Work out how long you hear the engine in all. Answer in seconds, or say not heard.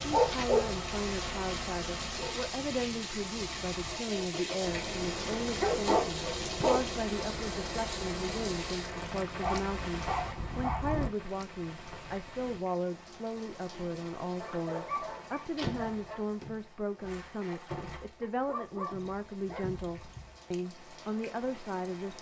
9 s.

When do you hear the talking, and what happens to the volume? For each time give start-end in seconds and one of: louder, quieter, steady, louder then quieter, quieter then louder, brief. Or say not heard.
0.1-22.1 steady.